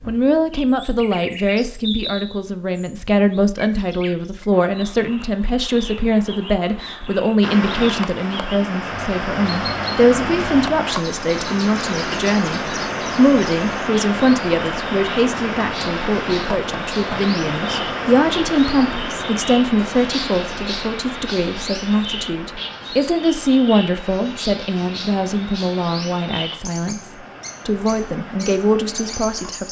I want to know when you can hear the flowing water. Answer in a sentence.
The flowing water can be heard from 7.4 to 29.6 s.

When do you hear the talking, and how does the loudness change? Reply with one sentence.
You can hear the talking from 0.1 to 29.6 s, at a steady volume.